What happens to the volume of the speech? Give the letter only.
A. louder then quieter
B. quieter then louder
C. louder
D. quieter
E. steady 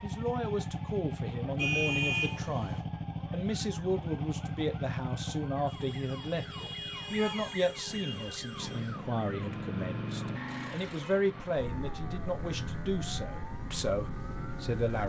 E.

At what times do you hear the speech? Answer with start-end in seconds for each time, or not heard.
0.0-15.0.